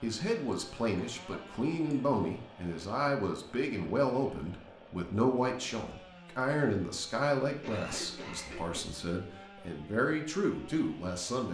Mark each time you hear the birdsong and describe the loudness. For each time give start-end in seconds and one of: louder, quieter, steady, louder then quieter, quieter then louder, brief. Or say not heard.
not heard.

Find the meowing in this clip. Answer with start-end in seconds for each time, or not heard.
not heard.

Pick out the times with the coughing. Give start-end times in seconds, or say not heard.
0.5-1.9, 7.6-8.8.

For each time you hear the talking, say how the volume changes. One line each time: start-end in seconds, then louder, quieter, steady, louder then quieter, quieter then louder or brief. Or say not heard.
0.0-11.4 steady.